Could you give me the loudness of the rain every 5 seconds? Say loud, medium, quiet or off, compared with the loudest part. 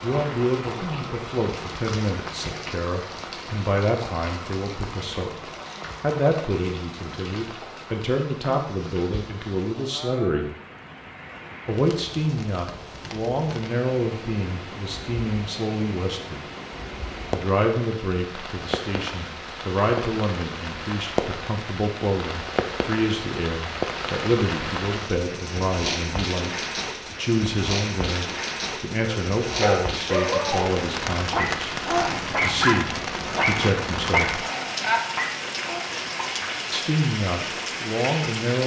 medium, medium, medium, medium, loud, loud, loud, loud.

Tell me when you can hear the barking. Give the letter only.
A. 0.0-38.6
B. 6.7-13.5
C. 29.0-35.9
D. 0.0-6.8
C.